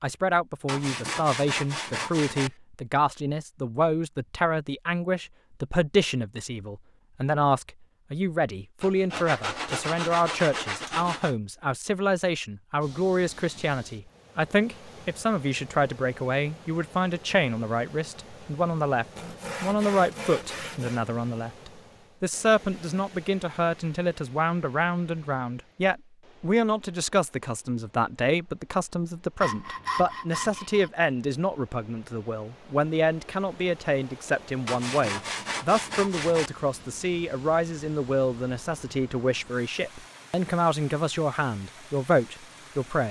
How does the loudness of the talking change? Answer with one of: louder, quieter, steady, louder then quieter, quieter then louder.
steady.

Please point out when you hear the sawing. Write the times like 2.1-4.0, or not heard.
0.7-2.5, 8.8-11.3, 19.1-21.1, 29.4-30.9, 34.6-36.5.